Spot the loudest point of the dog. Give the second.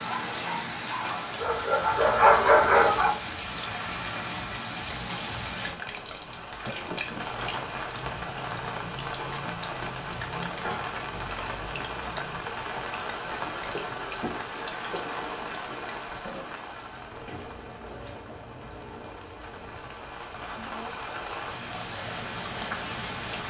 2 s.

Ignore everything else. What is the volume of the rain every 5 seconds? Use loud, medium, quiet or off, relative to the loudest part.
loud, loud, loud, medium, loud.